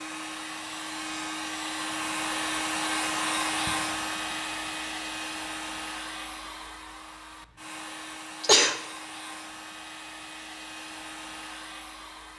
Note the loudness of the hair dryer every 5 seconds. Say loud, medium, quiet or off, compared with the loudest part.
loud, medium, medium.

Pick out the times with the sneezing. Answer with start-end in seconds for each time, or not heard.
3.6-4.3, 8.4-8.8.